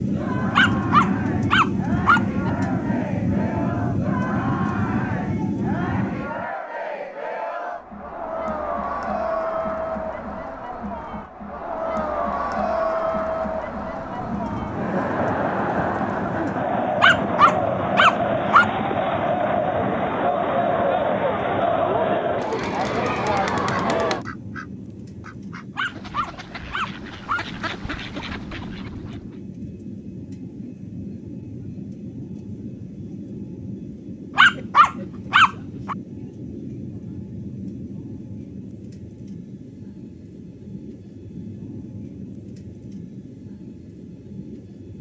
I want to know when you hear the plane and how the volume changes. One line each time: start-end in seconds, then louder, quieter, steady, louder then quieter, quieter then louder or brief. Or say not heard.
0.0-6.5 steady
13.8-44.9 quieter.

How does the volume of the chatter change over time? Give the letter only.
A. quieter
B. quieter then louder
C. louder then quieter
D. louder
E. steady
D.